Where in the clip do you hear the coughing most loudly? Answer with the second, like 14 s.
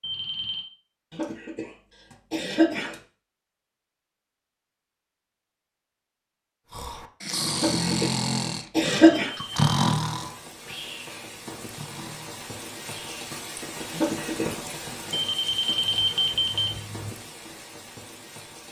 9 s.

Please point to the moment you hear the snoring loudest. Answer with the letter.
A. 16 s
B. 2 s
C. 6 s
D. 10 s
D.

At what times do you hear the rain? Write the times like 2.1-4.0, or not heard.
9.2-18.6.